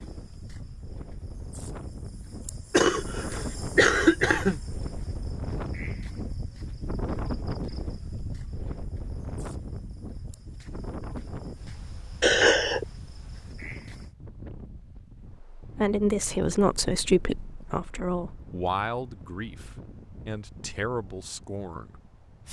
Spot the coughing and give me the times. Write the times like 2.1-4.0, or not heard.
2.7-4.5, 12.2-12.8.